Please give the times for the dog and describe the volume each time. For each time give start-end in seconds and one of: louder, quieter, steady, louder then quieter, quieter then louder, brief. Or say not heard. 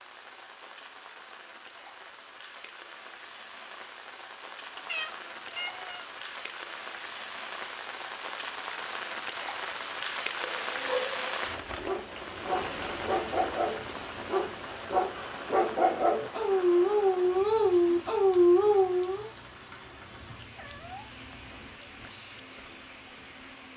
10.3-19.2 louder.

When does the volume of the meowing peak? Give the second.
5 s.